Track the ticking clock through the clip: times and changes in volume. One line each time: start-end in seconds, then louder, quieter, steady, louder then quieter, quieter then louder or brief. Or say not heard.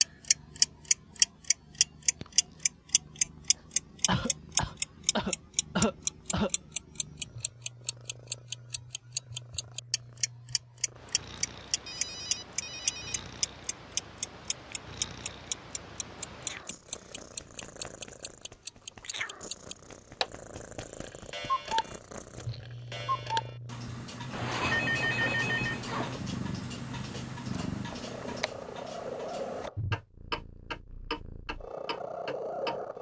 0.0-32.8 quieter.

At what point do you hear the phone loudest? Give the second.
25 s.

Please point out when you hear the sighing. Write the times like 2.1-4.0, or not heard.
not heard.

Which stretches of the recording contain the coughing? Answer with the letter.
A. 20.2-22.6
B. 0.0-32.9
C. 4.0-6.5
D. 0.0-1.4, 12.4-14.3
C.